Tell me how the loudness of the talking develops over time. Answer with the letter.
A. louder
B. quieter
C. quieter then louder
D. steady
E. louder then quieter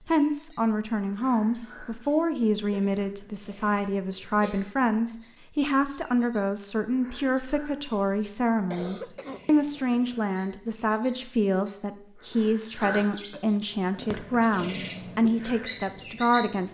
D.